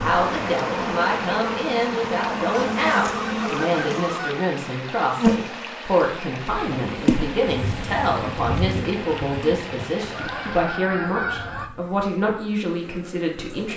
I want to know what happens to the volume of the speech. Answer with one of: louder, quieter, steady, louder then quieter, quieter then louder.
steady.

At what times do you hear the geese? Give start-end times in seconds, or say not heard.
2.5-4.5, 10.1-11.7.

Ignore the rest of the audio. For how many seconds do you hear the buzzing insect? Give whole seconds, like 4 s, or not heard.
14 s.